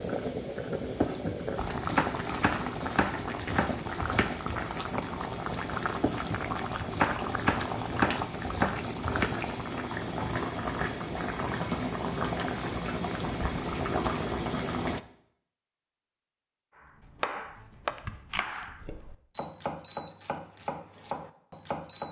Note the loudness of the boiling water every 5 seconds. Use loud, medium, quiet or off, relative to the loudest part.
loud, loud, loud, off, off.